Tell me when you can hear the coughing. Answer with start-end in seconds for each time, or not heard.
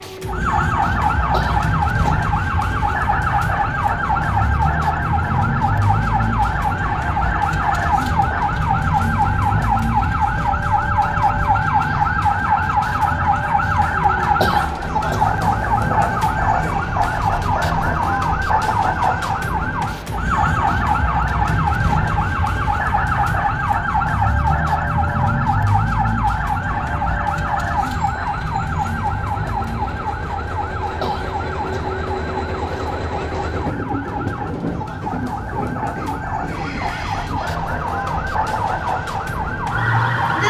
1.3-2.3, 14.4-15.3, 31.0-31.9.